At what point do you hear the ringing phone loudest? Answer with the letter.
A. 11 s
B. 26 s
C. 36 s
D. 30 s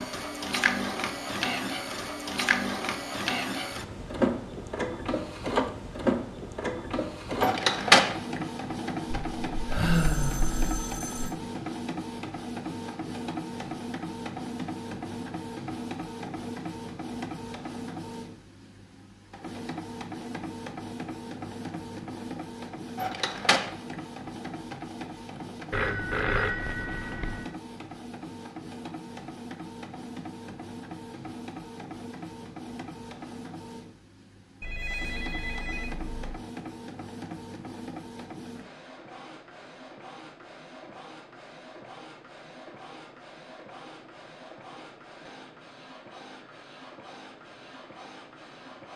B.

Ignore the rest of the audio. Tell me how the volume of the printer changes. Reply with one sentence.
The volume of the printer goes down.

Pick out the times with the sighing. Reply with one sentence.
You can hear the sighing from 9.7 to 10.7 s.